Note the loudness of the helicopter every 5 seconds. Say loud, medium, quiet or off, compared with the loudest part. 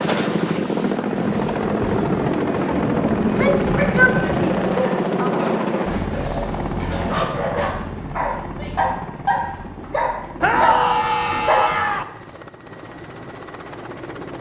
loud, medium, quiet.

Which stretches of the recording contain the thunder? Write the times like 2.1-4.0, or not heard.
1.1-4.6.